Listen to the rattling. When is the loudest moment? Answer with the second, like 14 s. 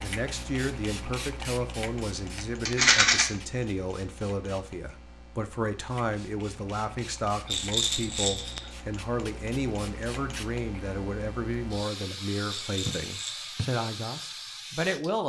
3 s.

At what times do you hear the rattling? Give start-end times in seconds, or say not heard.
2.6-3.2, 7.5-8.6, 12.5-13.4.